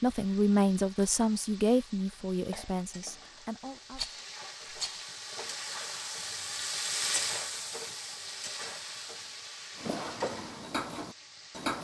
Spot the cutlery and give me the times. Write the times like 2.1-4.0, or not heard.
9.8-11.7.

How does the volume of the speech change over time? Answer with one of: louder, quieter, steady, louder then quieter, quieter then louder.
quieter.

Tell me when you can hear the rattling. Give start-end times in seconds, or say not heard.
3.9-5.1.